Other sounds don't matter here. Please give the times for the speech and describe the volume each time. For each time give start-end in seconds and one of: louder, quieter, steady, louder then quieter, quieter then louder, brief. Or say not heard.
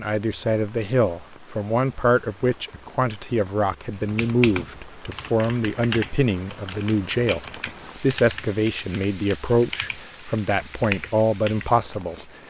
0.0-12.2 steady.